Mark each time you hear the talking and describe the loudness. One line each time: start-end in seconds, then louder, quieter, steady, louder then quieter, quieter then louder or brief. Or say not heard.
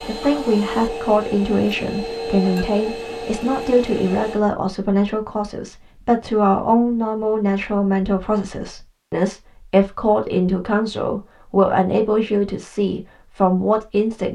0.0-14.3 steady.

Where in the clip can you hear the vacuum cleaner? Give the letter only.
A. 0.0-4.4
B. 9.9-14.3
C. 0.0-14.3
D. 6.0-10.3
A.